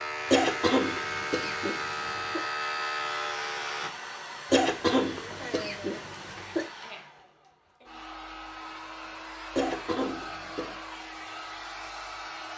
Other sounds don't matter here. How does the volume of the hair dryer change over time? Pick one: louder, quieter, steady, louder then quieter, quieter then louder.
steady.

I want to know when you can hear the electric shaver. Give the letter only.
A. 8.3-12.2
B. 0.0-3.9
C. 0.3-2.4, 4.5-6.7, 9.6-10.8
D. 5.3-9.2
B.